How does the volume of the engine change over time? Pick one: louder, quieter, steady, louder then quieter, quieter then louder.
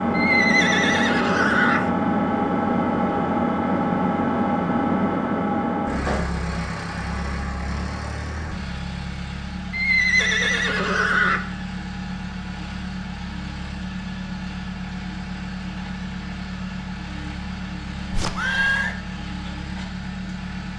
quieter.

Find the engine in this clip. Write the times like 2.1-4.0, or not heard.
0.0-20.7.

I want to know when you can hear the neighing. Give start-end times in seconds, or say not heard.
0.1-1.9, 9.7-11.4, 18.1-18.9.